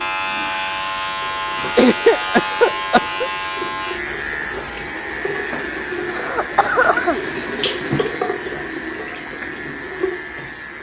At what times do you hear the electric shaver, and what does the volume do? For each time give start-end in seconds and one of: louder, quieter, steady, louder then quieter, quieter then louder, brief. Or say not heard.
0.0-10.7 quieter.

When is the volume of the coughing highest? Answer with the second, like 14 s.
2 s.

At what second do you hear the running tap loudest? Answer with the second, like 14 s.
8 s.